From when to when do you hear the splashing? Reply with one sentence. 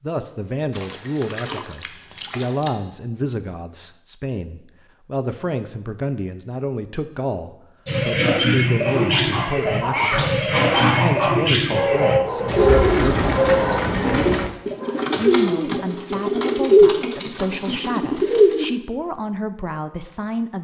The splashing can be heard from 0.7 to 2.7 s and from 12.3 to 13.8 s.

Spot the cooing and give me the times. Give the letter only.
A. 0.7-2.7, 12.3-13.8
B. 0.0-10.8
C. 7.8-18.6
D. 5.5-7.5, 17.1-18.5
C.